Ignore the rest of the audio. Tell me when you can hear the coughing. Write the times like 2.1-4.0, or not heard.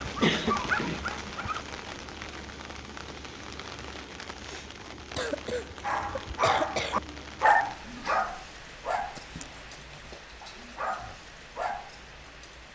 0.0-1.4, 5.2-7.0, 9.2-10.1.